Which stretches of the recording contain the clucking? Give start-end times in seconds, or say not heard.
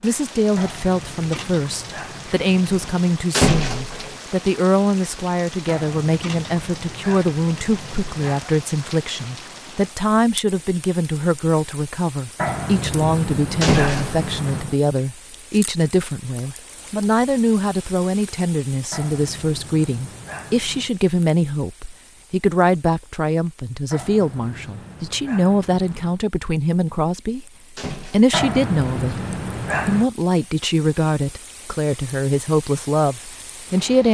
not heard.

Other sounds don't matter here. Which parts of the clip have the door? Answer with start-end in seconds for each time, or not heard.
3.3-4.2, 13.6-14.2, 27.8-28.4.